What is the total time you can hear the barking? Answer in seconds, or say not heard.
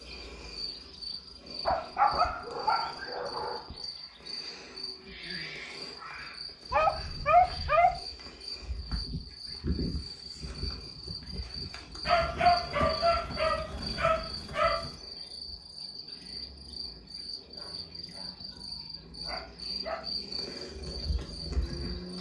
9 s.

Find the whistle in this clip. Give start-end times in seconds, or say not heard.
not heard.